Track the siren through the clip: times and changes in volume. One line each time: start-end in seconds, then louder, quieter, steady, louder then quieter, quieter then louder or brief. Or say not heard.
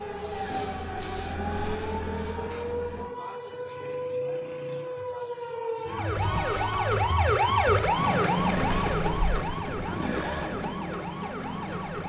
0.0-12.0 louder then quieter.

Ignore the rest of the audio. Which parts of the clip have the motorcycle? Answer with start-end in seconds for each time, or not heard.
0.0-3.0, 8.6-12.0.